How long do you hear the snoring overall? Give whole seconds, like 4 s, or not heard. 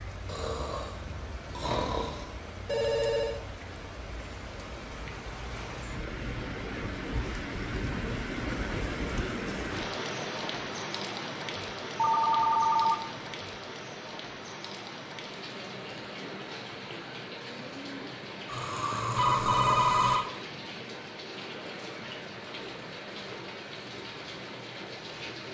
4 s.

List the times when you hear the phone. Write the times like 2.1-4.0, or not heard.
2.6-3.4, 11.9-13.0, 19.1-20.2.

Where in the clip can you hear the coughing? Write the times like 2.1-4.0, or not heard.
not heard.